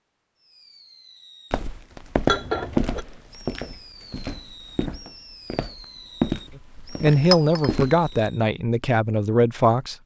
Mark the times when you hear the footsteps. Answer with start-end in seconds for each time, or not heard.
1.5-8.3.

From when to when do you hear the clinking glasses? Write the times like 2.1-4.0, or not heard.
2.2-3.0, 7.3-7.8.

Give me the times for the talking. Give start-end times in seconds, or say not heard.
6.8-9.9.